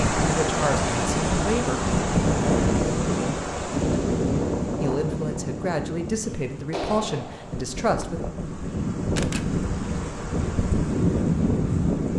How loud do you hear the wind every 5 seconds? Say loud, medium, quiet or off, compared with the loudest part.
loud, medium, loud.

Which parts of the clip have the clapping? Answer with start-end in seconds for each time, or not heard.
6.7-7.7.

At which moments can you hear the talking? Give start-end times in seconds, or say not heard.
0.1-1.8, 4.8-8.2.